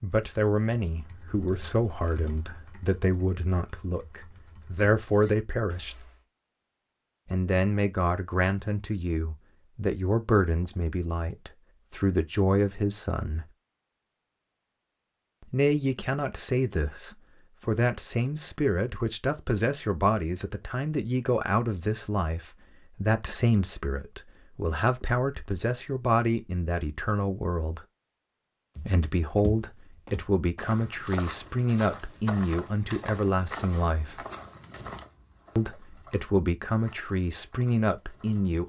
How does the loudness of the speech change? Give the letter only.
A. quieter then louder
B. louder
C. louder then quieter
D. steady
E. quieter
D.